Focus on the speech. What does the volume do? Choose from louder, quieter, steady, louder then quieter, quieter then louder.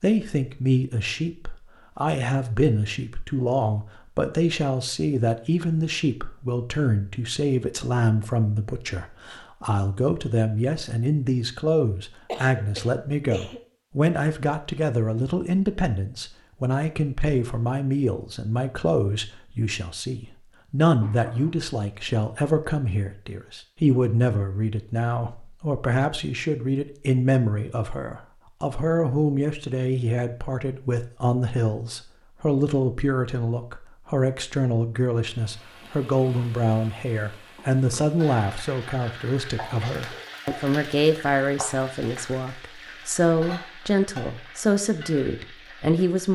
steady.